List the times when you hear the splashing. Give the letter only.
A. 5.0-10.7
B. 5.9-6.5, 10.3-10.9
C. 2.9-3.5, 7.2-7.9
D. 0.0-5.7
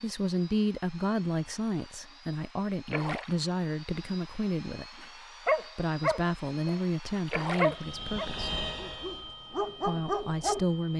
C.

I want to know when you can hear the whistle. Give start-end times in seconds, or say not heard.
not heard.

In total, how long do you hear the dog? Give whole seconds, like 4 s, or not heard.
6 s.